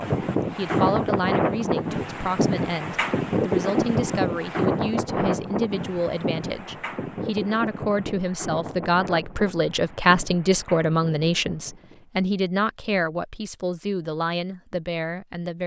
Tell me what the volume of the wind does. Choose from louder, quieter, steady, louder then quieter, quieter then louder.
quieter.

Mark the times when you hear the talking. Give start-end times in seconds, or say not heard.
0.0-15.6.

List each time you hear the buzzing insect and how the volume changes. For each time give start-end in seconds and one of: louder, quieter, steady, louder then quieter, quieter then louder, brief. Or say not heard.
not heard.